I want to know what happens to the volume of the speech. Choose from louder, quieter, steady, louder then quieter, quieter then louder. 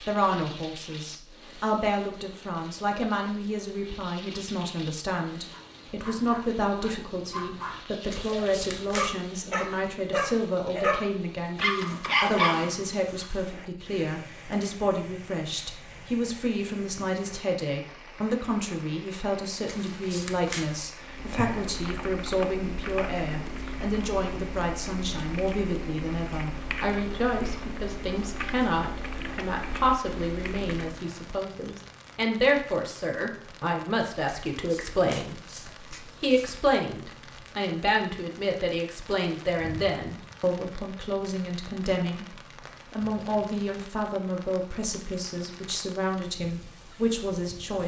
steady.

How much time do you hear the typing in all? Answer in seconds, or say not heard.
10 s.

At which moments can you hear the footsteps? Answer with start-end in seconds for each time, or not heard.
not heard.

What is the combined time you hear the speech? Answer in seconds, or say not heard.
48 s.